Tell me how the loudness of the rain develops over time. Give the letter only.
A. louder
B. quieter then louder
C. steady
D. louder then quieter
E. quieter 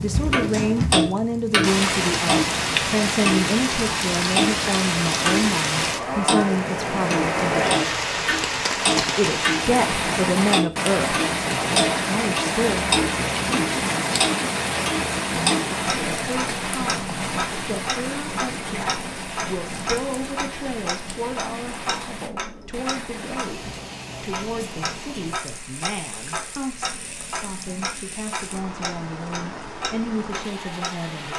E.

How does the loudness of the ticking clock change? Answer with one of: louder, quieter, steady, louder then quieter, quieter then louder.
quieter.